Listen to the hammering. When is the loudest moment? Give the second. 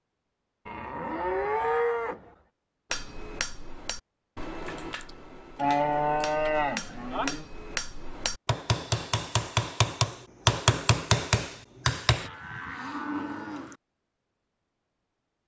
11 s.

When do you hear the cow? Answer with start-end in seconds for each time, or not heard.
0.7-2.2, 5.5-7.5, 12.2-13.8.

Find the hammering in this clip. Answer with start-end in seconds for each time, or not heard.
2.9-12.3.